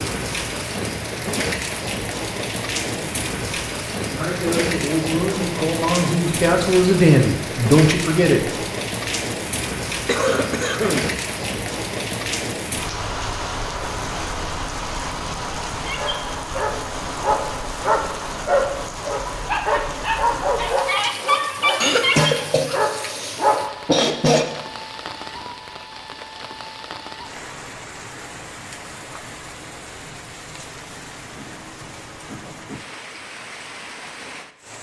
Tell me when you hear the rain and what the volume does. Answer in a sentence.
You can hear the rain from 0.0 to 34.7 s, getting quieter.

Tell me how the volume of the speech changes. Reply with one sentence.
The loudness of the speech goes up.